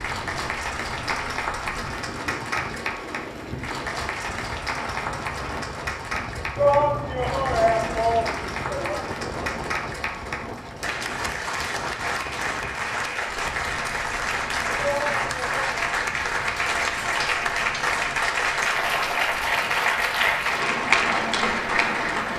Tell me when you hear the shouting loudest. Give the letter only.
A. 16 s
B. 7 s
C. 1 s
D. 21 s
B.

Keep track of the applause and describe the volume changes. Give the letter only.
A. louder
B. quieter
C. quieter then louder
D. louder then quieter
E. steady
A.